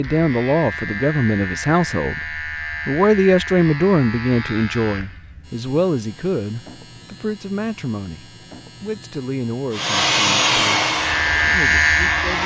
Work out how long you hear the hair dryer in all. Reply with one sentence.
The hair dryer can be heard for 3 seconds in total.